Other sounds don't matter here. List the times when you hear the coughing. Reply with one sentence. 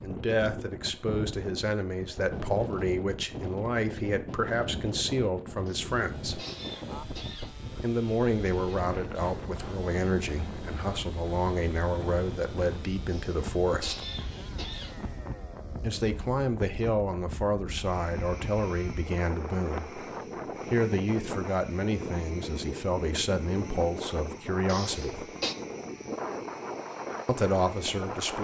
The coughing can be heard from 5.7 to 7.5 s, from 13.1 to 14.9 s and from 24.6 to 25.6 s.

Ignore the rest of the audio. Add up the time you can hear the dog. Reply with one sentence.
The dog can't be heard in this clip.